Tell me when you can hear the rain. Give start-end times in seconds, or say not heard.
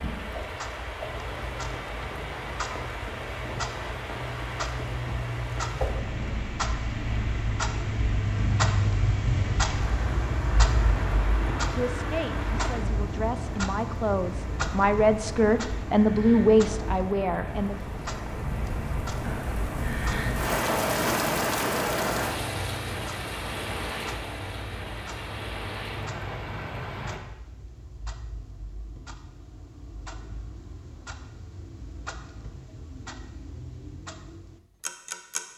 0.0-27.2.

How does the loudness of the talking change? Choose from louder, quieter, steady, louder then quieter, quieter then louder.
louder.